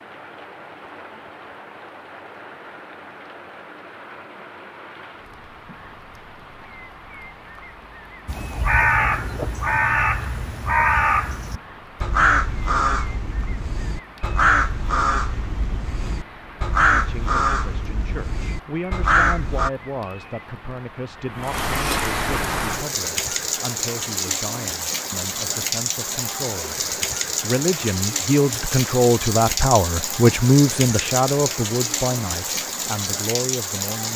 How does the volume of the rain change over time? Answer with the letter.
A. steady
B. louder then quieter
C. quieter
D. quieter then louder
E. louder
E.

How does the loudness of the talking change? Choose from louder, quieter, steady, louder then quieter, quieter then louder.
louder then quieter.